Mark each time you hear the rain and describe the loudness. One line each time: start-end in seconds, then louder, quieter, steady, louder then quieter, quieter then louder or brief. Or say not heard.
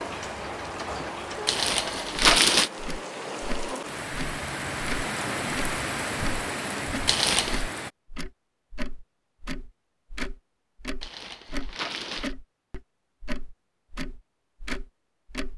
0.1-7.9 louder.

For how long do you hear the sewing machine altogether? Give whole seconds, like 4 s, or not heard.
not heard.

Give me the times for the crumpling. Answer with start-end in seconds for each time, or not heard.
1.4-2.7, 7.0-7.7, 11.0-12.3.